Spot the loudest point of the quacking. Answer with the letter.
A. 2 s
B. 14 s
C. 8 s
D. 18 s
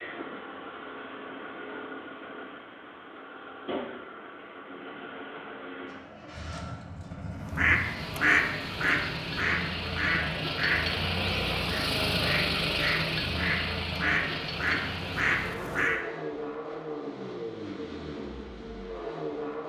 C.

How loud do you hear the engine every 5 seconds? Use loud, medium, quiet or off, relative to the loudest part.
medium, medium, loud, medium.